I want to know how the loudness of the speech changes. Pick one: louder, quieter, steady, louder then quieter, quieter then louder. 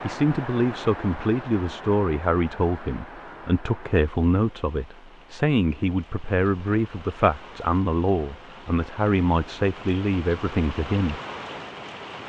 steady.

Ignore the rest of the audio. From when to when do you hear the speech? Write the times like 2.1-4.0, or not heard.
0.0-11.2.